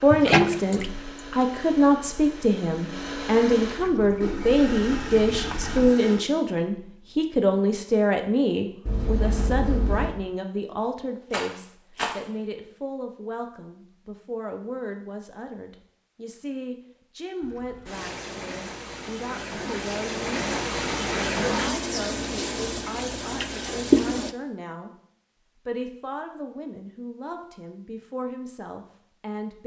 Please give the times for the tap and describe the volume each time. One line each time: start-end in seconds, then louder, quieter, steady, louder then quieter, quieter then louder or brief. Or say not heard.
0.0-5.9 quieter then louder
17.4-24.4 louder.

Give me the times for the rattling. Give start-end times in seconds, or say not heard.
11.3-12.2.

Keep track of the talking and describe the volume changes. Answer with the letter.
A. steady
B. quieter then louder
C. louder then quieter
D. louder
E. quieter
E.